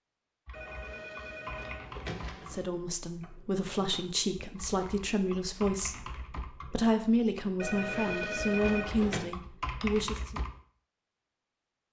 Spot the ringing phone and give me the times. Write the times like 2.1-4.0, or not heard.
0.5-2.8, 7.5-9.2.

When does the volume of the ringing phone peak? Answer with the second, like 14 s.
9 s.